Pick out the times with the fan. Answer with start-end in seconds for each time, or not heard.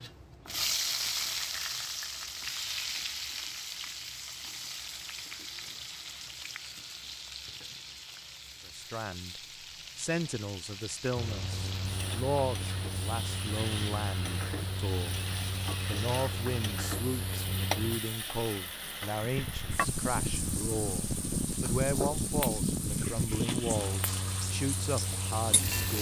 11.2-25.9.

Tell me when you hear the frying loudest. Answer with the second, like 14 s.
1 s.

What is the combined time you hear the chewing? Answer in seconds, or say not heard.
not heard.